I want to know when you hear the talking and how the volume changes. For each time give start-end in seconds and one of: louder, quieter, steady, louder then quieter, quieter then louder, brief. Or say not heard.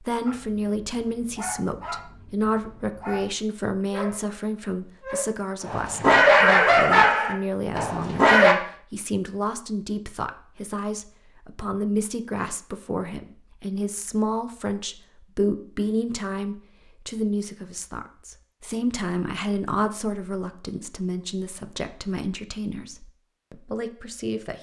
0.0-24.5 steady.